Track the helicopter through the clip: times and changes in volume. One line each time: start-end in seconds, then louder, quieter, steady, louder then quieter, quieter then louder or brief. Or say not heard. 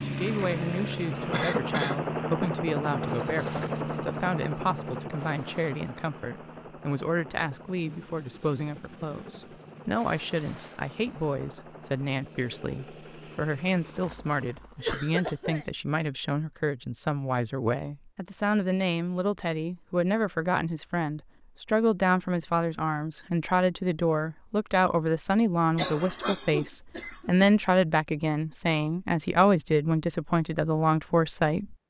0.0-14.9 quieter.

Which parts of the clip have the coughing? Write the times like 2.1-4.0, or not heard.
1.0-2.0, 14.8-15.7, 25.8-27.5.